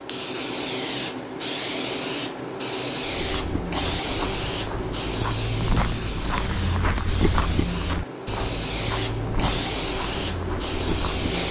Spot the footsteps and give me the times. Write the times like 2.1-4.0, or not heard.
3.0-11.4.